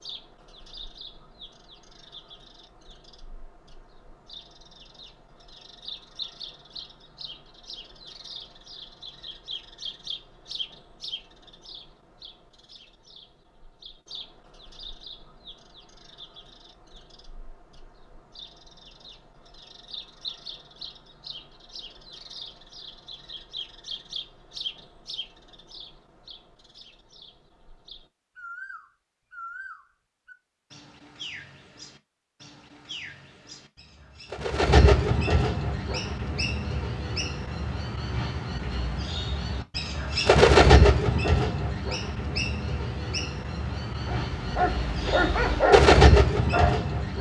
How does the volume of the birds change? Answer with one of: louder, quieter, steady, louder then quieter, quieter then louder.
louder.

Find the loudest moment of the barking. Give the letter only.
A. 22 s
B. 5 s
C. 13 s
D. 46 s
D.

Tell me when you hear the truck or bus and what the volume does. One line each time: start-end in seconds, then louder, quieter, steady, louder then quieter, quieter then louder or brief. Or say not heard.
not heard.